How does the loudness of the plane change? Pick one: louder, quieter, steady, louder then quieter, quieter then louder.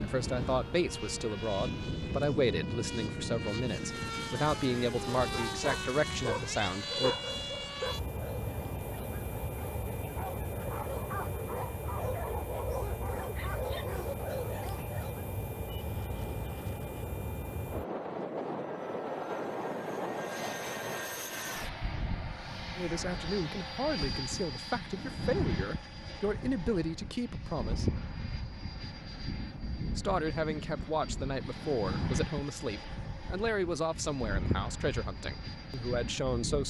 steady.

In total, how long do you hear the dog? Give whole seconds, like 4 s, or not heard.
10 s.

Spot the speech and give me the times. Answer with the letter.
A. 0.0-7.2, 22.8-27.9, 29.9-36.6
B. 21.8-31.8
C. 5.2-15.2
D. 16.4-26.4
A.